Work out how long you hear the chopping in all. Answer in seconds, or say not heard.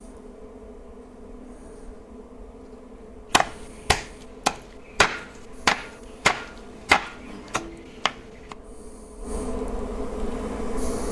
5 s.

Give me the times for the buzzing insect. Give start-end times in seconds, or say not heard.
0.0-11.0.